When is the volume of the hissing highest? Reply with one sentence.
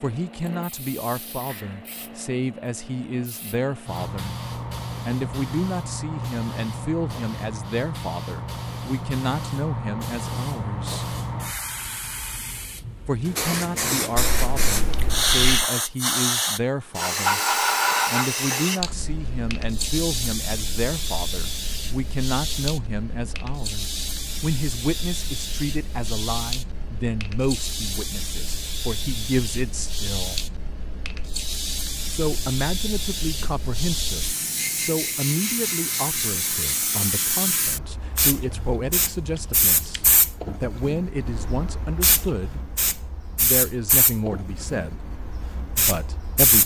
The volume of the hissing peaks at 18 seconds.